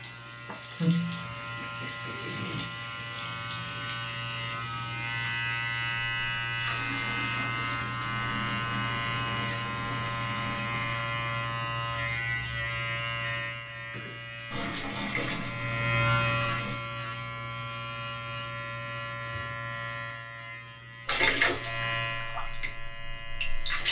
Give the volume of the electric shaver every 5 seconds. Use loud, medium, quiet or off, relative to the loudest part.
medium, loud, loud, loud, medium.